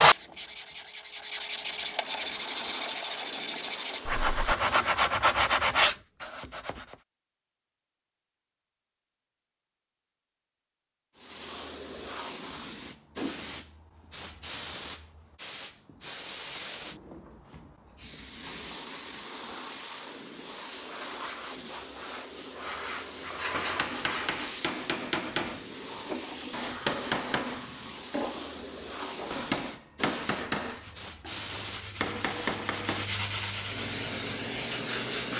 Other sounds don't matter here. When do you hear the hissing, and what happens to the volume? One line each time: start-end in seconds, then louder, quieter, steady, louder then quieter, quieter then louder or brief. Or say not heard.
0.0-5.0 louder
11.2-35.3 steady.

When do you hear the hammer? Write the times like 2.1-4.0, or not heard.
23.4-33.1.